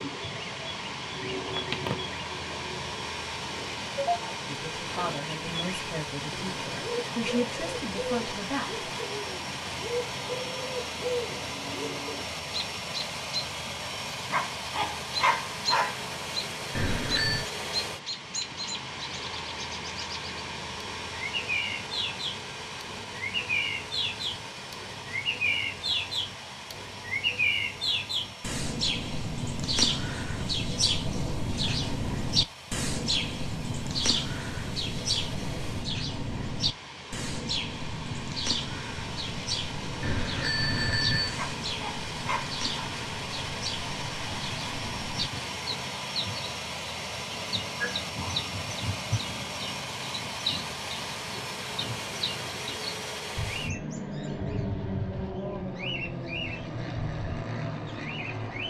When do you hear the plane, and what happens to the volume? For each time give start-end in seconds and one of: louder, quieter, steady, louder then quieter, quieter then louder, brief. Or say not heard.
0.0-58.6 quieter then louder.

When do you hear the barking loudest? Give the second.
15 s.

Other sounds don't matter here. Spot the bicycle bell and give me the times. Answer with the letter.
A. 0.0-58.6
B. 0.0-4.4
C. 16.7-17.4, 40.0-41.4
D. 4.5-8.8
C.